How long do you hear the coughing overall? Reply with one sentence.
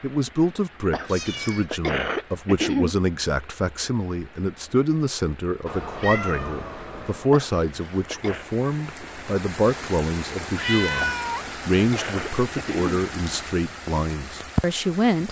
You can hear the coughing for 5 seconds altogether.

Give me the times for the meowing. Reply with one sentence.
You can hear the meowing from 1.1 to 1.6 s, from 5.7 to 7.3 s and from 10.6 to 11.5 s.